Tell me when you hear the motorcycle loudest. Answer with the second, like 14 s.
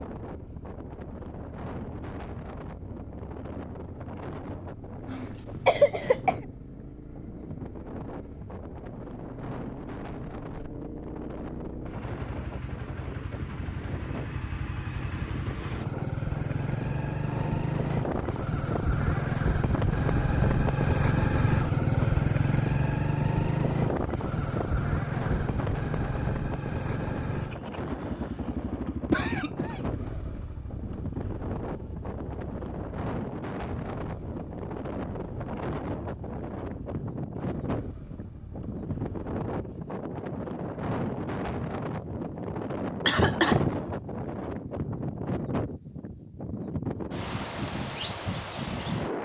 22 s.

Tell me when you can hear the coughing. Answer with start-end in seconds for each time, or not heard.
5.0-6.3, 29.1-29.8, 42.6-43.8.